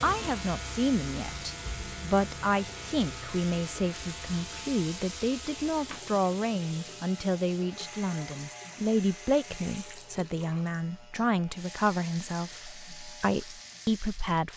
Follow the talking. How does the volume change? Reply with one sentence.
The volume of the talking stays about the same.